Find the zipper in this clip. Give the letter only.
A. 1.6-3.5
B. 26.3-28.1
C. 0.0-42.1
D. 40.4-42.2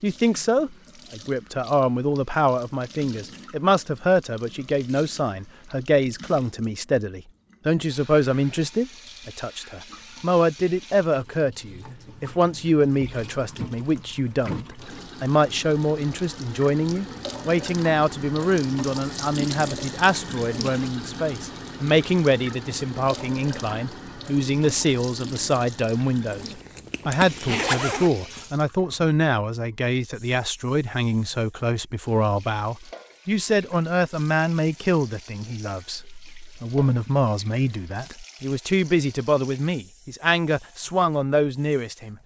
B.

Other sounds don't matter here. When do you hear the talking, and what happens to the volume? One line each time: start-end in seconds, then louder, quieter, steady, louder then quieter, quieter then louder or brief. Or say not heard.
0.0-42.1 steady.